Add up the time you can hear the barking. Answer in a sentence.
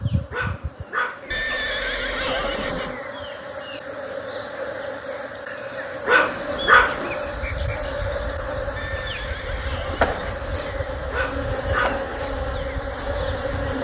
The barking can be heard for 3 seconds in total.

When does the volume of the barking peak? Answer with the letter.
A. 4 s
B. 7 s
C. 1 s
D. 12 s
B.